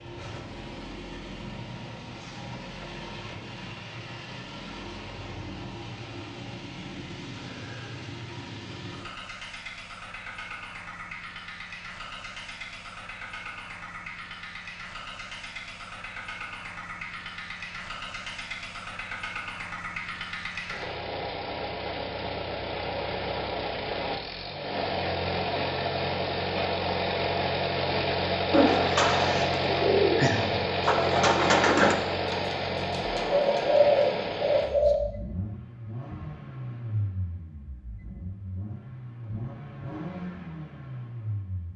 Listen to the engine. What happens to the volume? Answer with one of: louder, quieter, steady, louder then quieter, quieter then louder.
louder then quieter.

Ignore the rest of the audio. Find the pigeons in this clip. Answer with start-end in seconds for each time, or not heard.
28.5-35.0.